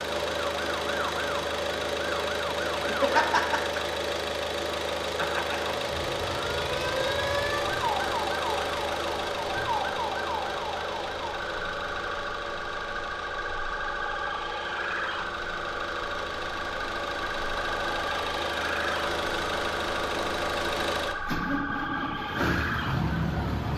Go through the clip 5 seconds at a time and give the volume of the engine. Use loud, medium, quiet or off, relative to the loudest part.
loud, loud, medium, loud, loud.